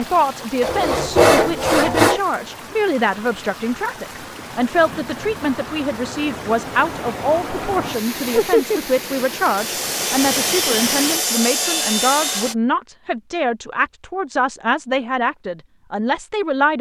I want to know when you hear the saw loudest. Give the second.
1 s.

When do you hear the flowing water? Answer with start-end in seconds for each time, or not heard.
0.0-11.2.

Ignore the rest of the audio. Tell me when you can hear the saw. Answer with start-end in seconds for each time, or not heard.
0.6-2.2, 9.6-12.6.